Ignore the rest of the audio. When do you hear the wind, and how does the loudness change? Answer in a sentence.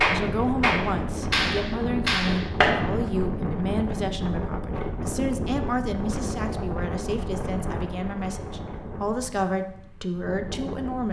The wind can be heard from 0.0 to 11.0 s, getting quieter.